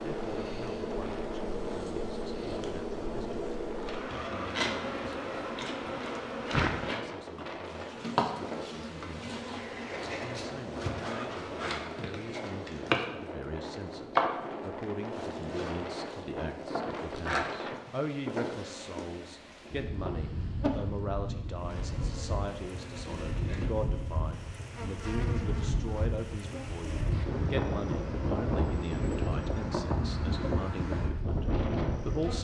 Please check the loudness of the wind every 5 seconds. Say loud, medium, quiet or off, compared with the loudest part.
medium, medium, medium, medium, medium, loud, loud.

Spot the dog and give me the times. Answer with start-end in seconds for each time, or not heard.
not heard.